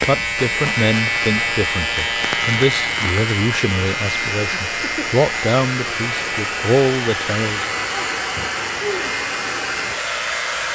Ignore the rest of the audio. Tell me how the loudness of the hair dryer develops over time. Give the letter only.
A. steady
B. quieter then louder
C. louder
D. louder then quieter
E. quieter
C.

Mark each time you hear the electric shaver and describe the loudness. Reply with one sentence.
The electric shaver can be heard from 0.0 to 10.7 s, getting quieter.